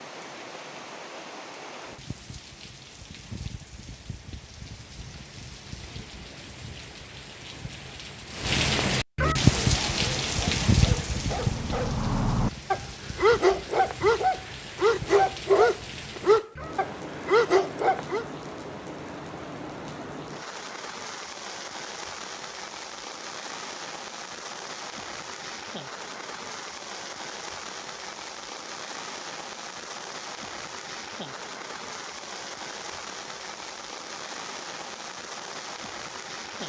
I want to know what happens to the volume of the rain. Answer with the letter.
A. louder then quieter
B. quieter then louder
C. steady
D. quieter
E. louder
A.